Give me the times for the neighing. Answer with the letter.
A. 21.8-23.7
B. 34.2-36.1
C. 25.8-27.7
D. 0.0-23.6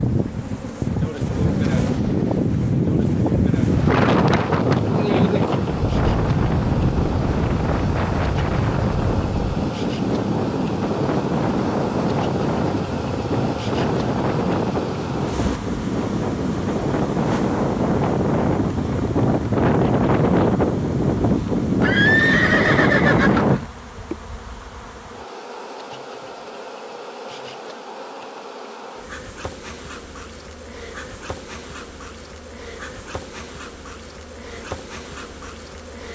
A.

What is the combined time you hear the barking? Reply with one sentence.
You can't hear the barking here.